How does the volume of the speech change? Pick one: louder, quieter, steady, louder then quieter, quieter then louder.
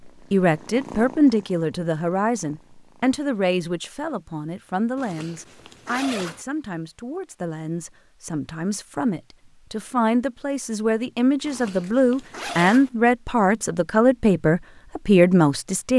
quieter then louder.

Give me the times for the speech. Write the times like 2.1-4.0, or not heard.
0.3-15.9.